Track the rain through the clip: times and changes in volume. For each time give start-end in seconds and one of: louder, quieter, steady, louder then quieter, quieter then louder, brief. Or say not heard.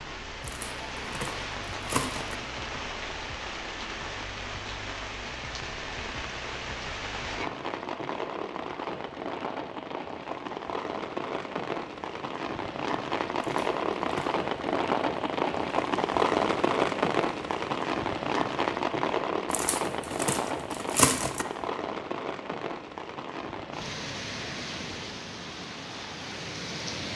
0.0-27.1 louder then quieter.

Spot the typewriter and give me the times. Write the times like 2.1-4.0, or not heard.
not heard.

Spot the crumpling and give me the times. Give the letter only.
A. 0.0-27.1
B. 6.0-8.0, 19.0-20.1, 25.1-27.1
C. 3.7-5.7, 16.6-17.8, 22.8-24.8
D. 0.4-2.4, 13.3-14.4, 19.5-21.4
D.